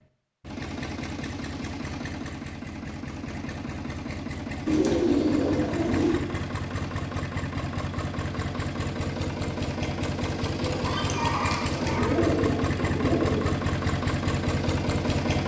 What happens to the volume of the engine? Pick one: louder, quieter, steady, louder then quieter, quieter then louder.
louder.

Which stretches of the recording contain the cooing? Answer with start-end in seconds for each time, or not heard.
4.7-6.2, 10.6-13.6.